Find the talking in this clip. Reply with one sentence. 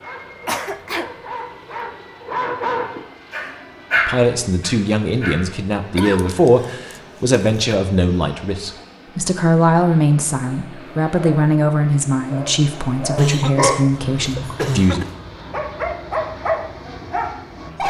You can hear the talking from 4.0 to 15.1 s.